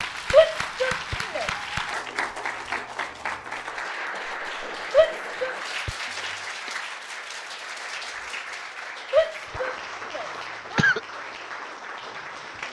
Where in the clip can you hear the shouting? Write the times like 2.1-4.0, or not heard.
0.3-2.0, 4.9-5.5, 9.1-10.9.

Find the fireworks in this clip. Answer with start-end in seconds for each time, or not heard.
not heard.